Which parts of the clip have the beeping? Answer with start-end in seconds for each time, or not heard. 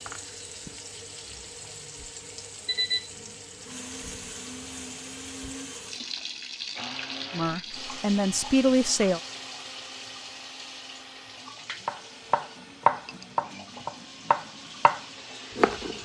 2.6-3.1.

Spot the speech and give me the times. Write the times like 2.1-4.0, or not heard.
7.3-9.2.